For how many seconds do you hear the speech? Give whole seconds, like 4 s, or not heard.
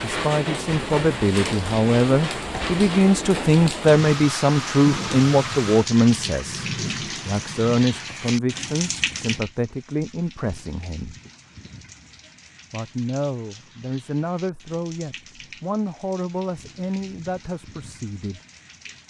17 s.